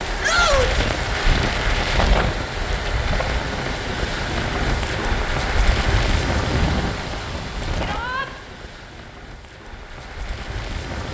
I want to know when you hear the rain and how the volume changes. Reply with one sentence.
The rain can be heard from 0.0 to 11.0 s, getting quieter.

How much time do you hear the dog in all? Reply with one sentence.
The dog can't be heard in this clip.